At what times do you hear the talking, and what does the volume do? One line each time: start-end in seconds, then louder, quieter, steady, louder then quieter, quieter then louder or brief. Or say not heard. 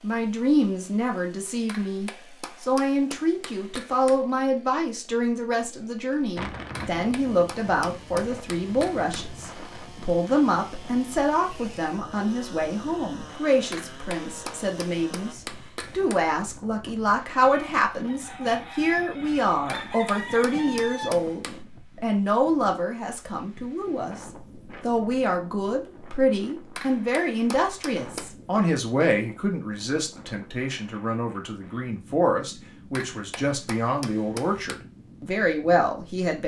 0.0-36.4 steady.